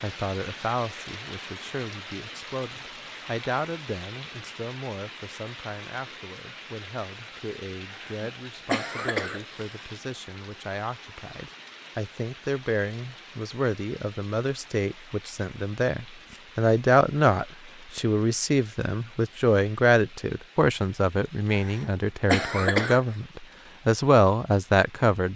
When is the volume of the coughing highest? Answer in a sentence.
The loudest moment of the coughing is at 23 seconds.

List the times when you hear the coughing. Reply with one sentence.
You can hear the coughing from 7.9 to 9.9 s and from 21.5 to 23.1 s.